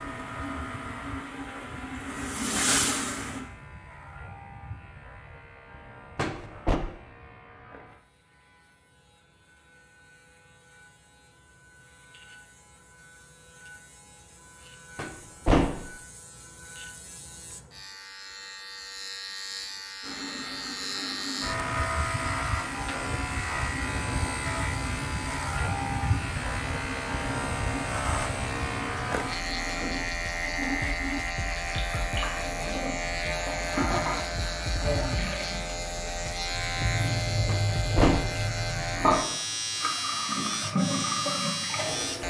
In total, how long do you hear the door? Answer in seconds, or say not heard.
2 s.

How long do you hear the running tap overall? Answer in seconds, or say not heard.
26 s.